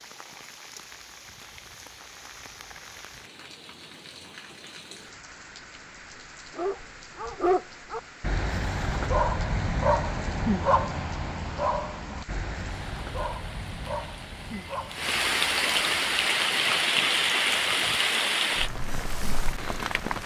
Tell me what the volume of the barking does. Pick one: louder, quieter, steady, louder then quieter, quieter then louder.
quieter.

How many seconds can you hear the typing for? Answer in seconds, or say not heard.
not heard.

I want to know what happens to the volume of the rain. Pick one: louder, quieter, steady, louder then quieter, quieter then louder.
louder.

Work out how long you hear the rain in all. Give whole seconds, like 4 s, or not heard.
20 s.